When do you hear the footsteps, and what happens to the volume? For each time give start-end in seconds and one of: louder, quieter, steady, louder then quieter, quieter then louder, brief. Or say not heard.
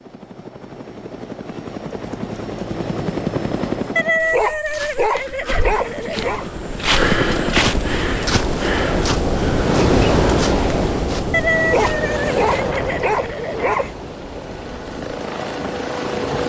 4.2-12.0 louder then quieter.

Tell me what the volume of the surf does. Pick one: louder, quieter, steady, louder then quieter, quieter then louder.
louder then quieter.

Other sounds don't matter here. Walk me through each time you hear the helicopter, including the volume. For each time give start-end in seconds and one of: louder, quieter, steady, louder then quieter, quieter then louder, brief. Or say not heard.
0.0-4.2 louder
5.5-8.0 brief
11.8-16.4 quieter then louder.